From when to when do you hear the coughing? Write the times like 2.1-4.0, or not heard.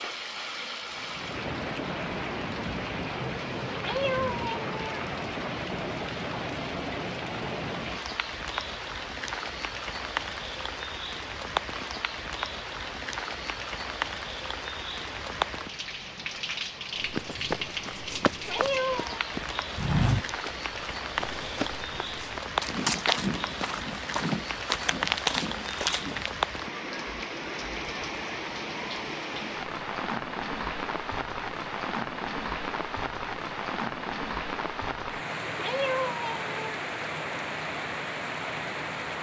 not heard.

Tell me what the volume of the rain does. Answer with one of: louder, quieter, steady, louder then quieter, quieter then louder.
steady.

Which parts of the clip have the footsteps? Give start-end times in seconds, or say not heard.
16.9-26.3.